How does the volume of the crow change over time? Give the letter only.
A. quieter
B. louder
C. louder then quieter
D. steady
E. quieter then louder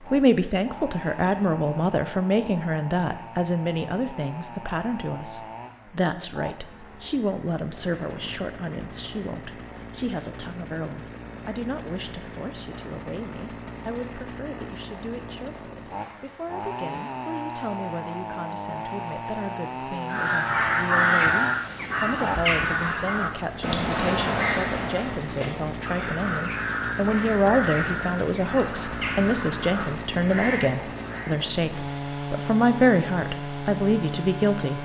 A.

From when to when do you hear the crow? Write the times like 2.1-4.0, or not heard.
20.1-31.4.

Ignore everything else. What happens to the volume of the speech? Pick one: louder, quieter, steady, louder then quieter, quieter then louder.
quieter then louder.